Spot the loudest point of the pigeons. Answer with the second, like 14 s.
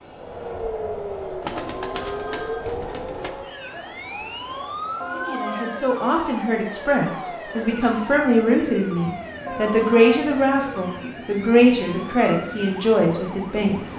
2 s.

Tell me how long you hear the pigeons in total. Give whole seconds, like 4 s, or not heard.
2 s.